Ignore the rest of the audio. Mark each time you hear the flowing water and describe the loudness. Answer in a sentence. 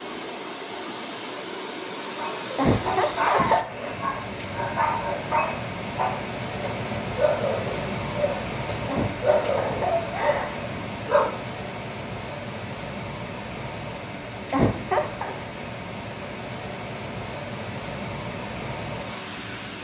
You can hear the flowing water from 0.0 to 19.7 s, at a steady volume.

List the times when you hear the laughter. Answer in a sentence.
The laughter can be heard from 2.5 to 3.6 s, from 8.8 to 10.8 s and from 14.5 to 15.3 s.